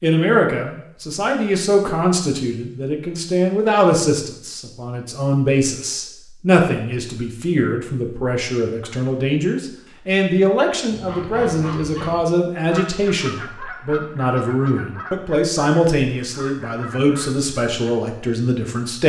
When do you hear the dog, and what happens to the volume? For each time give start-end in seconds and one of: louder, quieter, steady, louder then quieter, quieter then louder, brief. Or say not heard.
not heard.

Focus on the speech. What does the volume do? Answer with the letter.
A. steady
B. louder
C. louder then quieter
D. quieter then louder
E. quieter
A.